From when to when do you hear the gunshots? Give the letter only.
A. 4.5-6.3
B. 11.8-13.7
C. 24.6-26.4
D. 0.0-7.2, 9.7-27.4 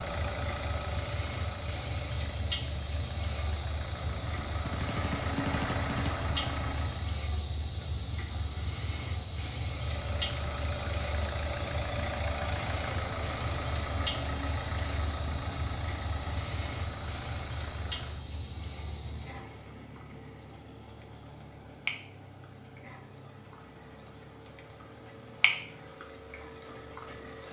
A.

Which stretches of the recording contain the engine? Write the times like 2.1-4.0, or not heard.
0.0-7.2, 9.7-27.4.